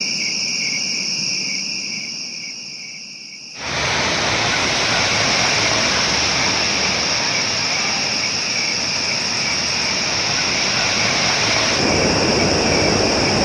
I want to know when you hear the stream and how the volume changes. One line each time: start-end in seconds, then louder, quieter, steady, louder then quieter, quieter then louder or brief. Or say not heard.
3.5-13.4 quieter then louder.